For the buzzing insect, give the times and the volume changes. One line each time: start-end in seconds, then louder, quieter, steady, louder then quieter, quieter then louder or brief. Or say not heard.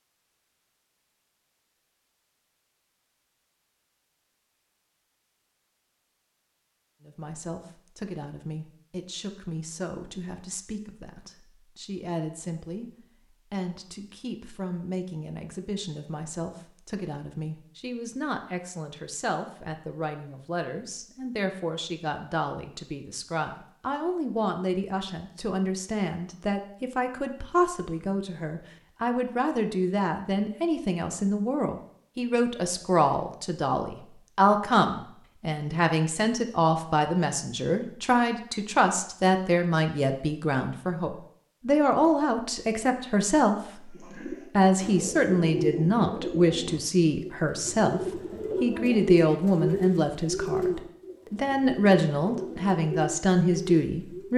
not heard.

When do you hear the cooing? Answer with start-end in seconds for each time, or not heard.
43.9-54.3.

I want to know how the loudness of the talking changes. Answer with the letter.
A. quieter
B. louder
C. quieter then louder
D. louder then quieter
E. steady
B.